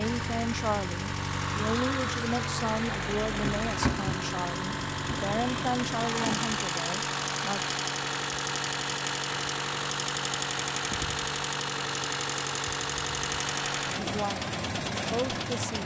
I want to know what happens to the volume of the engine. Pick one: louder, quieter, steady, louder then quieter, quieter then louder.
steady.